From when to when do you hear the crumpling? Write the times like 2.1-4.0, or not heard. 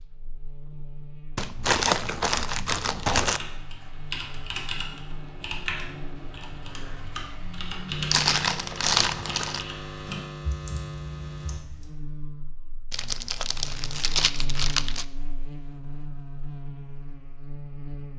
1.4-3.4, 8.1-9.7, 12.9-15.1.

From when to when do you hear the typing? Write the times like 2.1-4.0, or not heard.
3.2-12.1.